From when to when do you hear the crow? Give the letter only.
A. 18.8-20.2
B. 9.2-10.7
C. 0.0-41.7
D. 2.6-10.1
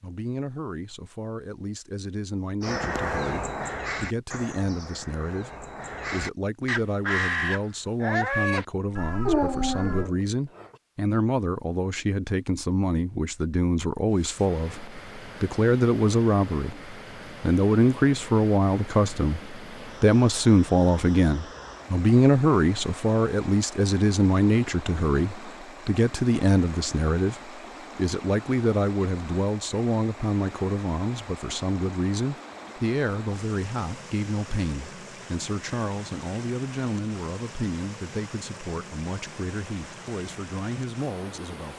D.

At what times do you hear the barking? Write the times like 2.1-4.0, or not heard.
9.2-10.7.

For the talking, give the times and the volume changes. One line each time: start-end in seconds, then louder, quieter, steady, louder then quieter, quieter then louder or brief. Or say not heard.
0.0-41.7 louder then quieter.